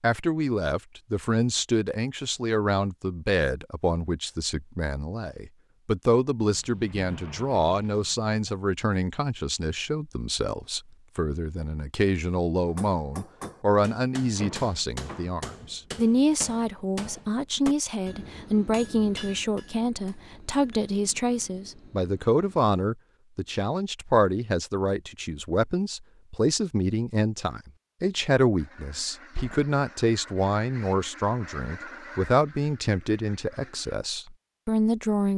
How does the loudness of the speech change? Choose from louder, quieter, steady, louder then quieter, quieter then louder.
steady.